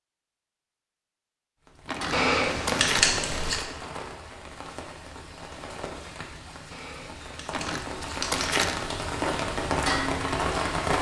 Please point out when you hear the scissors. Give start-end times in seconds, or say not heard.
2.1-3.6, 6.7-8.6.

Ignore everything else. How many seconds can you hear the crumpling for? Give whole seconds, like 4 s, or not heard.
3 s.